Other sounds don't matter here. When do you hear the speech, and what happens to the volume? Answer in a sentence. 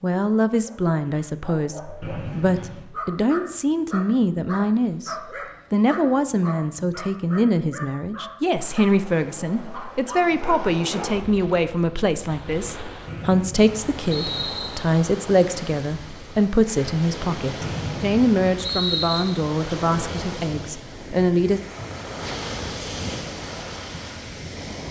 The speech can be heard from 0.0 to 21.6 s, at a steady volume.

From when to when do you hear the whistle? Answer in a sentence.
You can hear the whistle from 2.0 to 2.9 s, from 13.1 to 14.7 s and from 17.6 to 19.2 s.